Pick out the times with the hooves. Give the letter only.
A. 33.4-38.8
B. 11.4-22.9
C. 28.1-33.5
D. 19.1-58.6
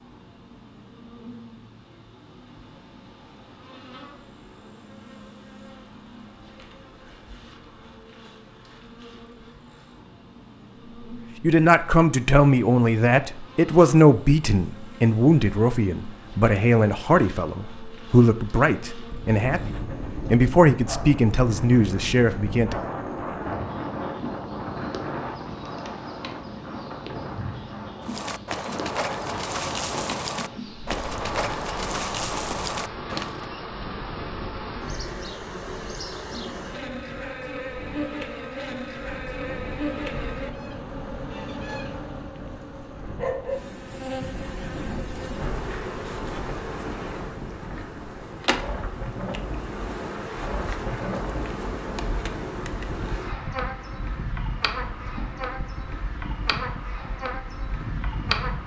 C.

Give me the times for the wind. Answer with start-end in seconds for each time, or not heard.
19.1-58.6.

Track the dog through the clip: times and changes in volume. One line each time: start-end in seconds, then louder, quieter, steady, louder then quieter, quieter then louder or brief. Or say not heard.
not heard.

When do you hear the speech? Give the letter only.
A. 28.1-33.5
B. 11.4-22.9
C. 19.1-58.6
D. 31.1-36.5
B.